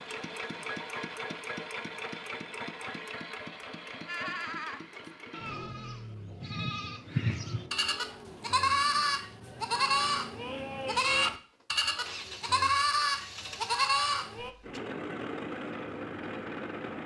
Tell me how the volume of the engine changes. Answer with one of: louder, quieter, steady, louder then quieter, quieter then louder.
quieter then louder.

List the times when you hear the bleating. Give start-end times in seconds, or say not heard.
4.0-14.5.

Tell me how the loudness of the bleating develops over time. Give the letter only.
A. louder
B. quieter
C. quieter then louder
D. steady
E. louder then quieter
A.